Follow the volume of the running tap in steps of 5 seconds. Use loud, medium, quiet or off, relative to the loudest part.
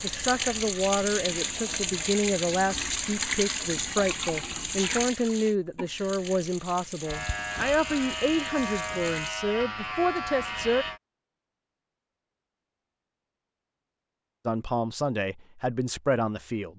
loud, medium, off, off.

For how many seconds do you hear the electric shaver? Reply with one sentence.
The electric shaver can be heard for 4 seconds in total.